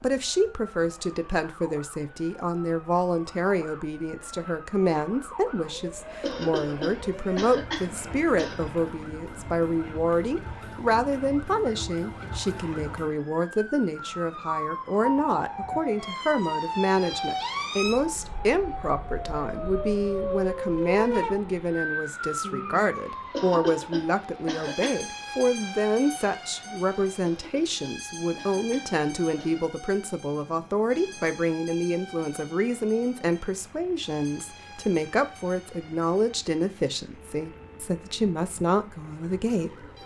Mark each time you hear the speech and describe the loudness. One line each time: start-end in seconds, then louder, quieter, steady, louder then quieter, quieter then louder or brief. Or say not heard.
0.0-39.9 steady.